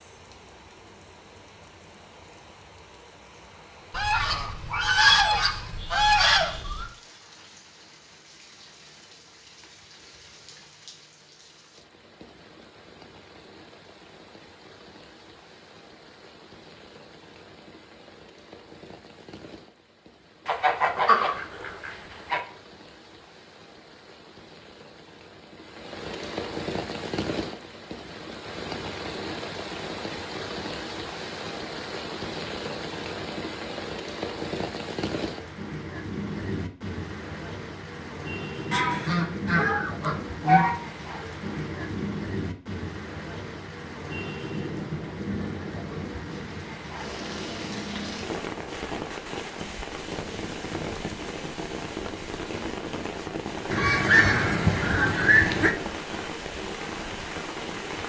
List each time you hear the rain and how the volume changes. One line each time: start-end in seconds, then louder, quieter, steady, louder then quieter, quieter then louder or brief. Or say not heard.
0.0-58.0 louder.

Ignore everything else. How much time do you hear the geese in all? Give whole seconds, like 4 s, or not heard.
9 s.